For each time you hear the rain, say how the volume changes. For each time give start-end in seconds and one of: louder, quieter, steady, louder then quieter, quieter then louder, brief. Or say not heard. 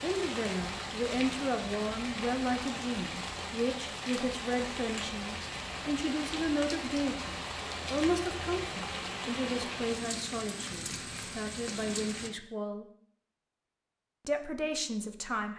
0.0-12.3 steady.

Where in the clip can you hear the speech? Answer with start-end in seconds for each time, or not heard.
0.0-12.8, 14.2-15.5.